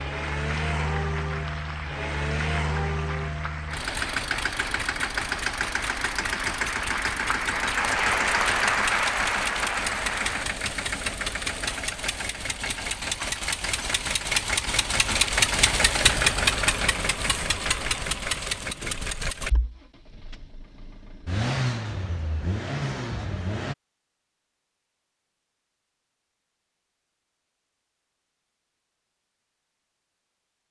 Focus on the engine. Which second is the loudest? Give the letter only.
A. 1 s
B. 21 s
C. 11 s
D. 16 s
D.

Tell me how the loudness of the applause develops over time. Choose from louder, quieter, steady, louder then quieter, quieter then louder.
louder.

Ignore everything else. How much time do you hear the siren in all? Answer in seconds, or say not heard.
not heard.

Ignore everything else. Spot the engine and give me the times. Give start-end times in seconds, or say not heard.
0.0-23.8.